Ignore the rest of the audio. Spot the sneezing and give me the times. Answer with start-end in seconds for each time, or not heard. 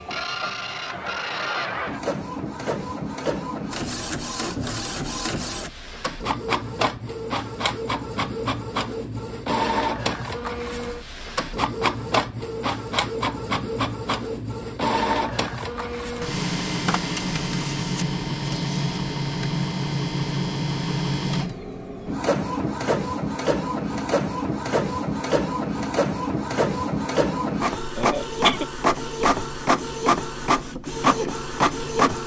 27.9-28.6.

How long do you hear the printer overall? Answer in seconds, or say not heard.
32 s.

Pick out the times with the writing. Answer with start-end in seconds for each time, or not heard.
not heard.